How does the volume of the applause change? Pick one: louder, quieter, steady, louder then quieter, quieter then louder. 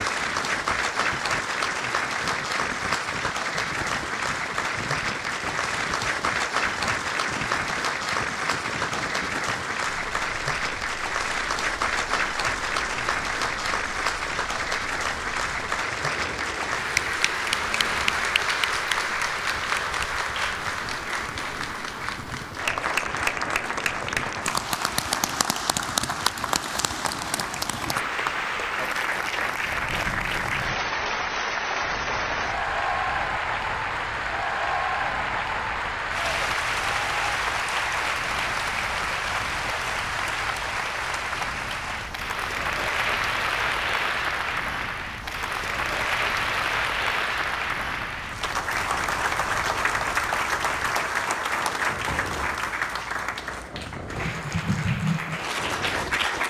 steady.